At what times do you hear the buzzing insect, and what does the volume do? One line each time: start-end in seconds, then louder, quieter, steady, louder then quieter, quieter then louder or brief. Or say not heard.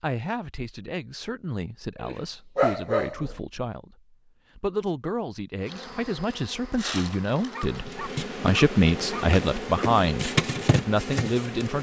5.7-11.7 louder.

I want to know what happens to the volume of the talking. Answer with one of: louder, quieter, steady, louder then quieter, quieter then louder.
louder.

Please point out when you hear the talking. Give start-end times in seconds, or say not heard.
0.0-11.7.